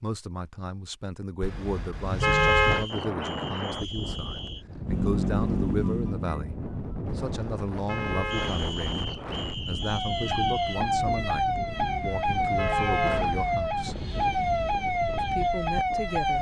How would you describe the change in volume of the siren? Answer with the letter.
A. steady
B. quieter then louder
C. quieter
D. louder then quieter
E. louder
A.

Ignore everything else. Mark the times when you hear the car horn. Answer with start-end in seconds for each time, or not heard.
1.4-2.9, 7.0-8.7, 11.8-13.6.